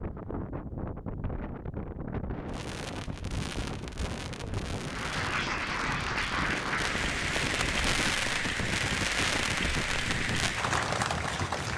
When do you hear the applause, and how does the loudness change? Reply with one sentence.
The applause can be heard from 4.8 to 11.7 s, at a steady volume.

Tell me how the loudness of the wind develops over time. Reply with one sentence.
The loudness of the wind stays about the same.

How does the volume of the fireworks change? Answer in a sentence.
The volume of the fireworks goes up.